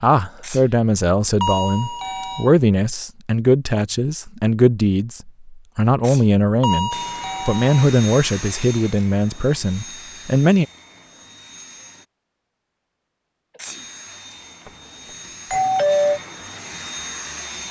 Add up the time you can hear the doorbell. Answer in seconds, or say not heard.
3 s.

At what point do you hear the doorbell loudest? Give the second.
16 s.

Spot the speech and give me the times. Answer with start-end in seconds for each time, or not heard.
0.0-10.7.